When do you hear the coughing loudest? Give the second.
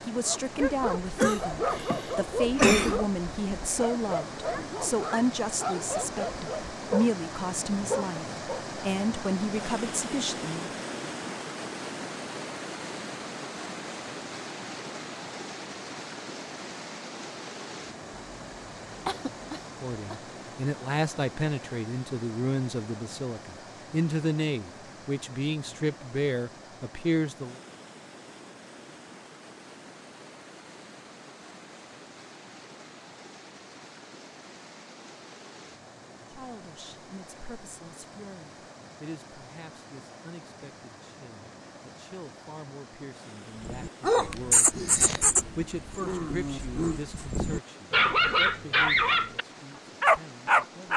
3 s.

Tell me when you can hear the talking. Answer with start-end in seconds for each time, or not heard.
0.1-10.7, 19.8-27.6, 36.3-50.9.